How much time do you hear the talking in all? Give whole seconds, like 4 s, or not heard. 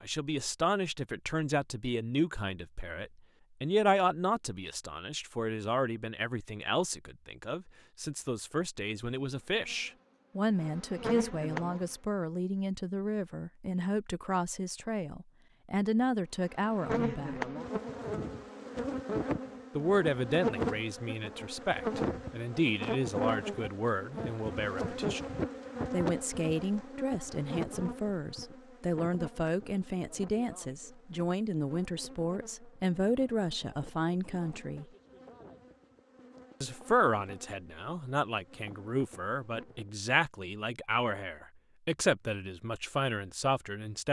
40 s.